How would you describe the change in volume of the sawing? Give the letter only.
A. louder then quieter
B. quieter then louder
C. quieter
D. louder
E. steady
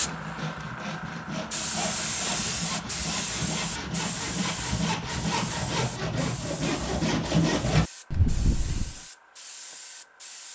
D.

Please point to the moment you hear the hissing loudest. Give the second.
2 s.